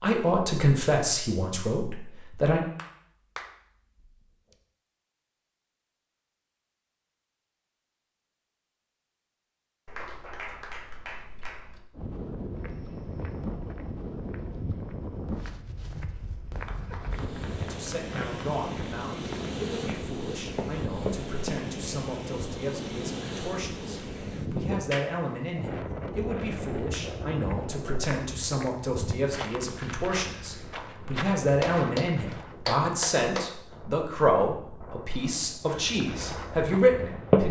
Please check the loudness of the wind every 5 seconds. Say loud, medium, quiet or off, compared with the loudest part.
off, off, loud, loud, loud, loud, quiet, medium.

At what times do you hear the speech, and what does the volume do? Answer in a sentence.
You can hear the speech briefly from 0.0 to 2.6 s; and from 17.6 to 37.4 s, getting louder.